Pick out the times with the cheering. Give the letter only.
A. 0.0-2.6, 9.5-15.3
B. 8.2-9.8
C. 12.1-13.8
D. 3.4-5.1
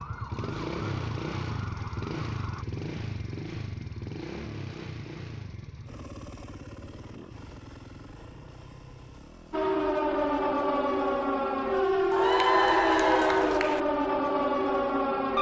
C.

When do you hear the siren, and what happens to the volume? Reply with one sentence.
You can hear the siren briefly from 0.0 to 2.6 s; and from 9.5 to 15.3 s, at a steady volume.